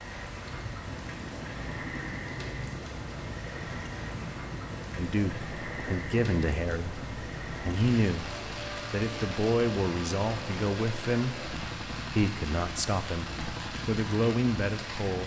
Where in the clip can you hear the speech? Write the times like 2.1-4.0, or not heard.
5.0-15.2.